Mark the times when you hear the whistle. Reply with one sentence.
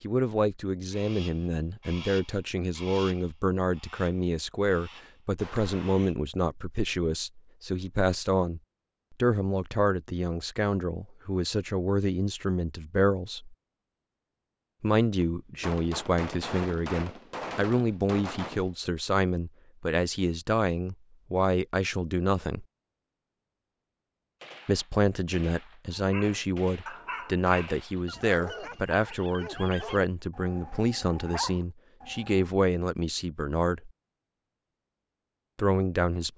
You can't hear the whistle here.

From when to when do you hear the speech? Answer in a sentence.
The speech can be heard from 0.0 to 13.6 s, from 14.8 to 22.6 s, from 24.6 to 33.9 s and from 35.5 to 36.3 s.